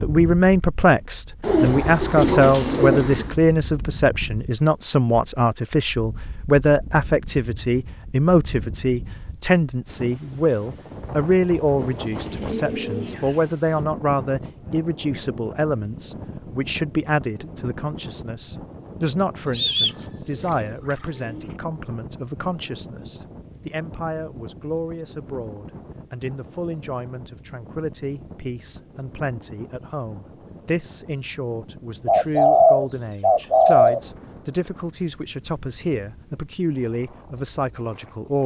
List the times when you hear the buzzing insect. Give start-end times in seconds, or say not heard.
not heard.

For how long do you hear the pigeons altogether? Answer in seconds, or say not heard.
8 s.